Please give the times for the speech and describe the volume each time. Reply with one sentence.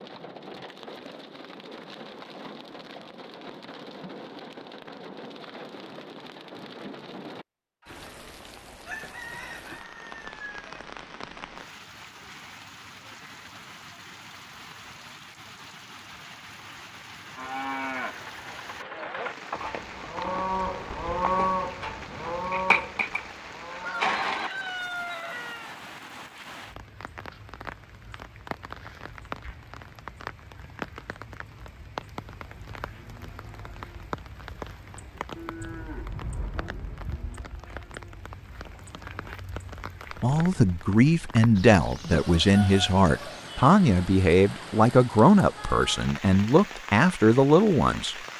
The speech can be heard from 40.2 to 48.1 s, at a steady volume.